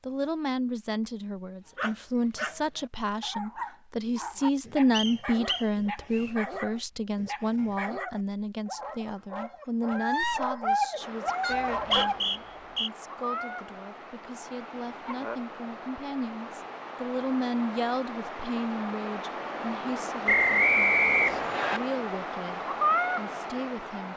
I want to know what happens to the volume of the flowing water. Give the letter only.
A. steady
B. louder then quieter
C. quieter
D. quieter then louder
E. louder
E.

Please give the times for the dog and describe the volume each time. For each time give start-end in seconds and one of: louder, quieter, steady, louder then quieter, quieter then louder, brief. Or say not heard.
1.8-12.2 louder.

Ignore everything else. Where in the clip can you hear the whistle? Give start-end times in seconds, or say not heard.
4.9-6.3, 11.5-12.9, 20.2-21.8.